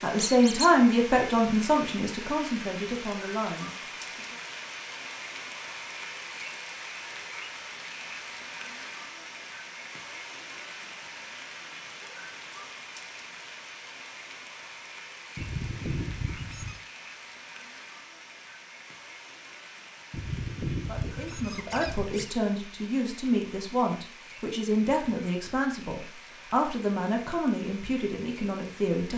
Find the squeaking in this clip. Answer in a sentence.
You can hear the squeaking from 0.1 to 0.7 s, from 15.3 to 16.8 s and from 20.1 to 22.3 s.